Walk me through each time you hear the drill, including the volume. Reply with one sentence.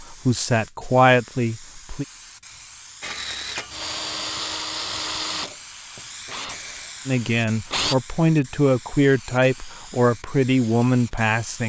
The drill can be heard from 3.0 to 8.0 s, getting quieter.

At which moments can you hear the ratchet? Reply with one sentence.
The ratchet can't be heard in this clip.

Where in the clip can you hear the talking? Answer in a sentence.
You can hear the talking from 0.0 to 2.0 s and from 7.0 to 11.6 s.